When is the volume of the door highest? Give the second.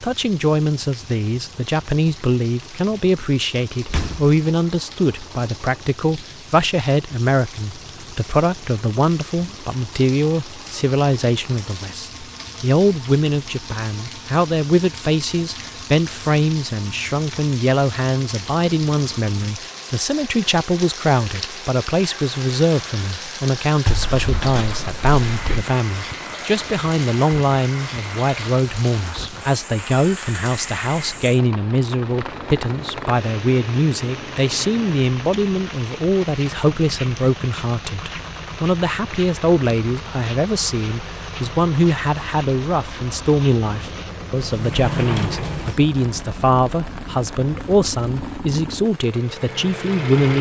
45 s.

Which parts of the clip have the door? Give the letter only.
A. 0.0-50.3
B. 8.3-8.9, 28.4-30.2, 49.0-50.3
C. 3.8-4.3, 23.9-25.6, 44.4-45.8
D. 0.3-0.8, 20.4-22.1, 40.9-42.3
C.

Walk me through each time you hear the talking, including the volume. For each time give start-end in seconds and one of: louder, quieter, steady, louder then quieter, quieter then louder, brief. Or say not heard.
0.0-50.3 steady.